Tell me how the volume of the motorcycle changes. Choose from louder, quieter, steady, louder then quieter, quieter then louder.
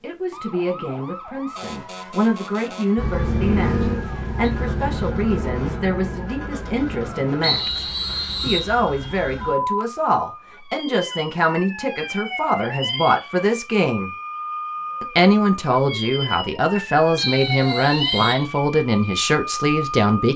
quieter.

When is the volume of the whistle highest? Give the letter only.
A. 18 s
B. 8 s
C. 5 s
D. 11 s
B.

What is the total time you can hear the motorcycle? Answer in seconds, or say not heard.
4 s.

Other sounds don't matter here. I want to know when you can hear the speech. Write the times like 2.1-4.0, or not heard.
0.0-14.1, 15.0-20.3.